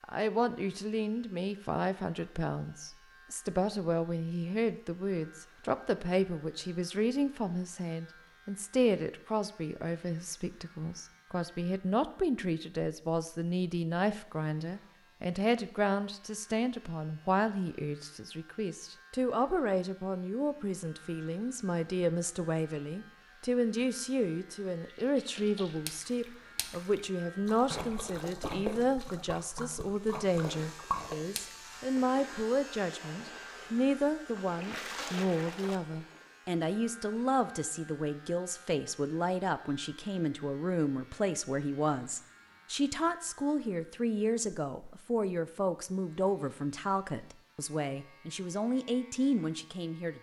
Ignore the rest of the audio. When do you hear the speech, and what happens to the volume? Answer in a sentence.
You can hear the speech from 0.0 to 50.1 s, at a steady volume.